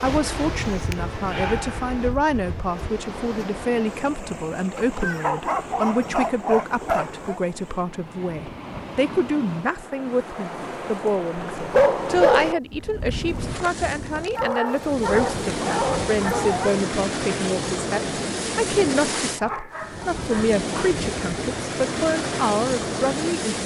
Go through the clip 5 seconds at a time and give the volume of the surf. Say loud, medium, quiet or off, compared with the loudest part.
medium, medium, medium, loud, loud.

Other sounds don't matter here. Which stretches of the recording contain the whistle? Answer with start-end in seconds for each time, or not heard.
not heard.